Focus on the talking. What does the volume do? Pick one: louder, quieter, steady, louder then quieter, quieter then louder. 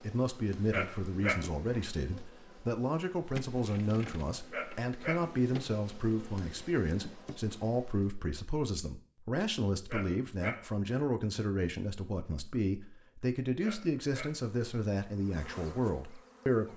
steady.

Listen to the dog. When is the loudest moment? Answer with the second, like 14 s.
1 s.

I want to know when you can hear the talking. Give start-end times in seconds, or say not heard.
0.0-16.7.